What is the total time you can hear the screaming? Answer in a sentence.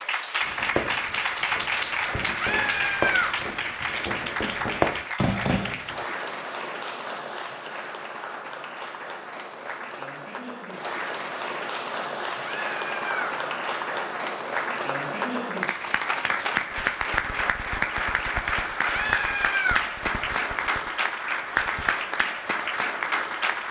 The screaming can be heard for 3 seconds in total.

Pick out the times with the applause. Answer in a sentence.
You can hear the applause from 0.0 to 23.6 s.